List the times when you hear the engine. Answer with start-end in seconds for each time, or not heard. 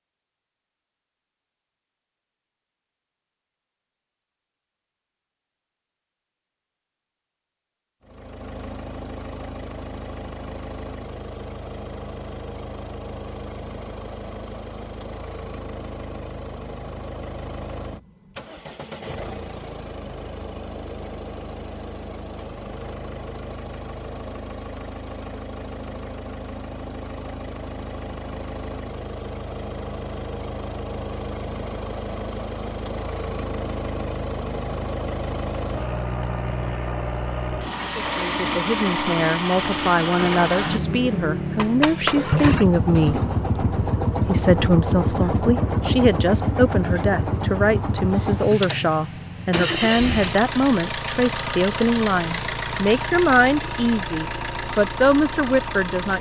8.0-56.1.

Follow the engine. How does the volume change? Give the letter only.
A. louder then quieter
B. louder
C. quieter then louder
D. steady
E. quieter
B.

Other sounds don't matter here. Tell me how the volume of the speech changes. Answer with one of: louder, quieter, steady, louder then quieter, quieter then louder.
steady.